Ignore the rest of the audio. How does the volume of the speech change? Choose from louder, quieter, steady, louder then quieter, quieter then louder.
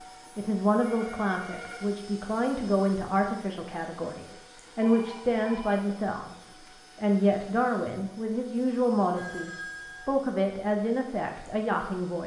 steady.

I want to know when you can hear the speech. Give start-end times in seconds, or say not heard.
0.3-12.2.